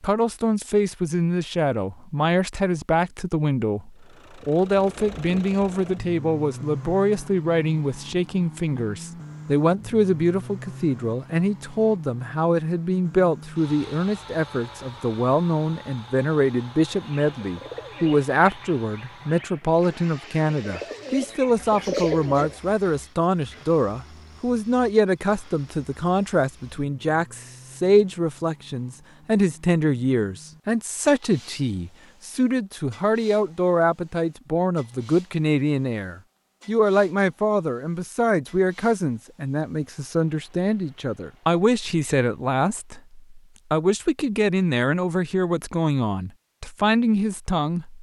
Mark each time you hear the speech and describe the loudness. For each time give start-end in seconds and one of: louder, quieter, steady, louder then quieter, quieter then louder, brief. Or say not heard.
0.0-47.9 steady.